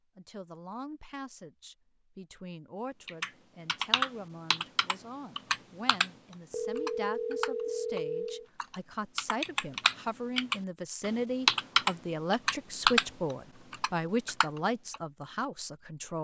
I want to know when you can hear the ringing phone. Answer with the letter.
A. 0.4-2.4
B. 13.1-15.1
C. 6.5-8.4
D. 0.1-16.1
C.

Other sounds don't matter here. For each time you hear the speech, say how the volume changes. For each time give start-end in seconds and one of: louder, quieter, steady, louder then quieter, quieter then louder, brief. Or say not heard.
0.1-16.1 louder.